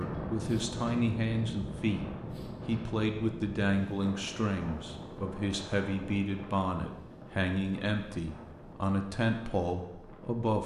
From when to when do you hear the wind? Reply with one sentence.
The wind can be heard from 0.0 to 10.5 s.